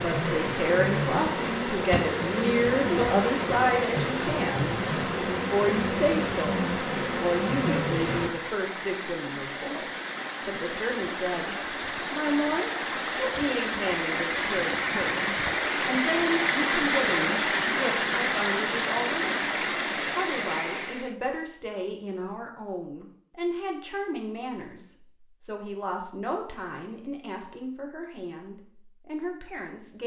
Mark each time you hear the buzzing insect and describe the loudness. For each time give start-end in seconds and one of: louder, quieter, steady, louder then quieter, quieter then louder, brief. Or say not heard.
0.0-8.3 steady.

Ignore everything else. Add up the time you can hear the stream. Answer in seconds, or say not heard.
21 s.